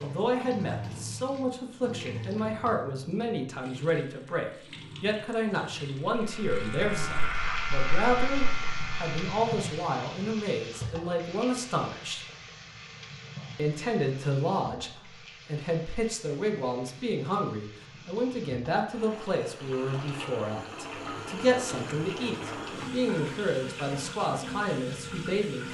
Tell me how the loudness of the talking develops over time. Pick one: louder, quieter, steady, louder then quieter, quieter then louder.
steady.